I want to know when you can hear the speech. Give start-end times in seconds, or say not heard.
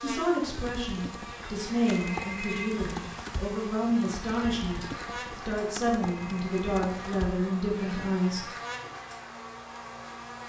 0.0-8.5.